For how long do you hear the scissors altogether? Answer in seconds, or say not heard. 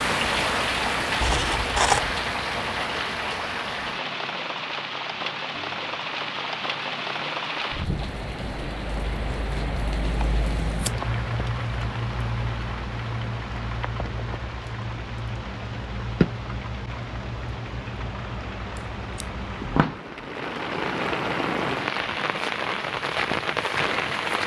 3 s.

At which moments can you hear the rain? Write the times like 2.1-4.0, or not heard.
0.0-24.4.